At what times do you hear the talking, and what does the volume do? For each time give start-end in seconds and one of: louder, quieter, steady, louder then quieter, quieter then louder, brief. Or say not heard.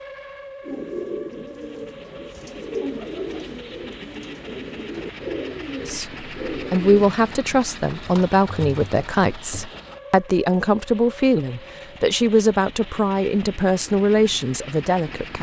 5.8-15.3 steady.